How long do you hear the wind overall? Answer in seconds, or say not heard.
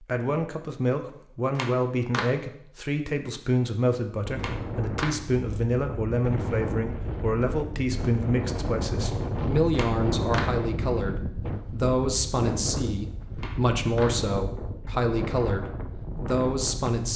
13 s.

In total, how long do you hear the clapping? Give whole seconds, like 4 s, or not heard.
3 s.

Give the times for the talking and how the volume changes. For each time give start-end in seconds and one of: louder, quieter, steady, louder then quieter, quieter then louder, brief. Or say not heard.
0.0-17.1 steady.